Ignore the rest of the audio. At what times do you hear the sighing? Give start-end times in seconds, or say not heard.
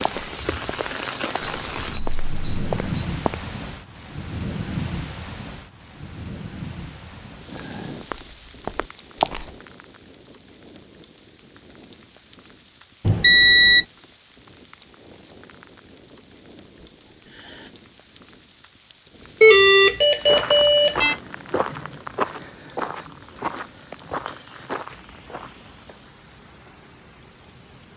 7.5-8.1, 17.1-17.7.